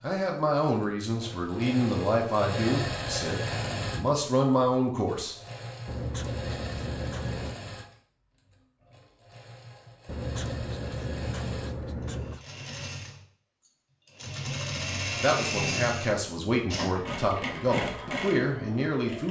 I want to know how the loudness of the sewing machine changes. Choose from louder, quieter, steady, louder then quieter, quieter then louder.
quieter then louder.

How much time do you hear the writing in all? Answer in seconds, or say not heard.
4 s.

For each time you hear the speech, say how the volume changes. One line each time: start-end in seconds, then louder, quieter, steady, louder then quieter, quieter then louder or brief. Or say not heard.
0.0-5.3 quieter then louder
15.0-19.2 steady.